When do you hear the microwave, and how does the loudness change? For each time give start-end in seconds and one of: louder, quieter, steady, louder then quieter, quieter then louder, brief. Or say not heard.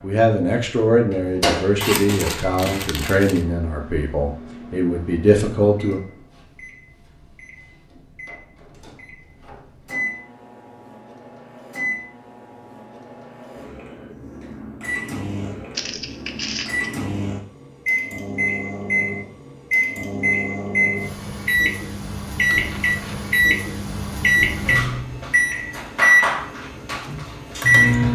0.0-28.1 quieter then louder.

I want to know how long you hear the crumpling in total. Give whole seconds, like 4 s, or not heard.
4 s.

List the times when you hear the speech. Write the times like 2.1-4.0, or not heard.
0.0-6.0.